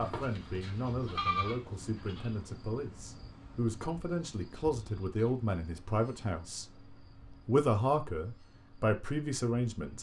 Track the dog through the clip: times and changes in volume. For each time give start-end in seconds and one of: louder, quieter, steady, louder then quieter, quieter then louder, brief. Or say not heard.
not heard.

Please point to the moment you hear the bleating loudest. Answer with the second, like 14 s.
1 s.